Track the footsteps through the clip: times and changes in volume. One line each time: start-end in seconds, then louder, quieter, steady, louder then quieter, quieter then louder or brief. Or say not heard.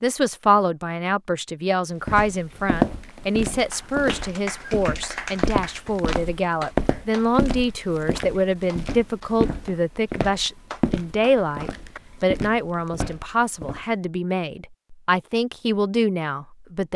2.0-13.8 quieter.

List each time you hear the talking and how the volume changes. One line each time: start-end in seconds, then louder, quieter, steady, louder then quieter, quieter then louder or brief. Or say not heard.
0.0-16.9 steady.